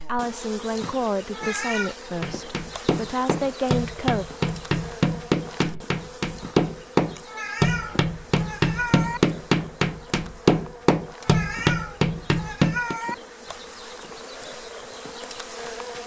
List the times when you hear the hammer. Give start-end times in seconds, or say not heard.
2.2-12.9.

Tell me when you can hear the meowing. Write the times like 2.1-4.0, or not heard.
1.3-1.9, 7.2-9.2, 11.2-13.2.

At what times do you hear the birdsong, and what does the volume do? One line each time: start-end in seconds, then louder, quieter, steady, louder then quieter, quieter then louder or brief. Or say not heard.
not heard.